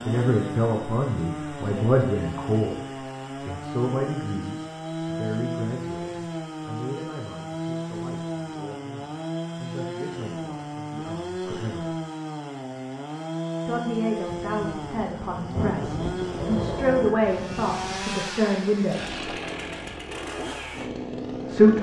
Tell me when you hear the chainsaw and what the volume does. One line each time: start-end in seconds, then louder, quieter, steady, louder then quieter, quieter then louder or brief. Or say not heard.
0.0-21.7 steady.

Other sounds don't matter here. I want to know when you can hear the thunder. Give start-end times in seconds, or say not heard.
14.2-18.1.